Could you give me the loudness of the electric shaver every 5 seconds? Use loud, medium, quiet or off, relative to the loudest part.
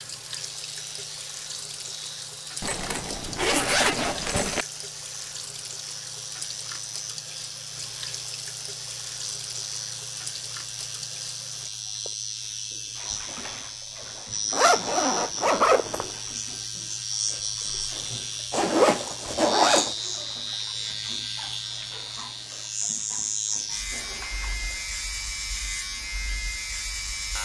medium, medium, loud, loud, loud, loud.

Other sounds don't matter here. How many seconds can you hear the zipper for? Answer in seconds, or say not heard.
5 s.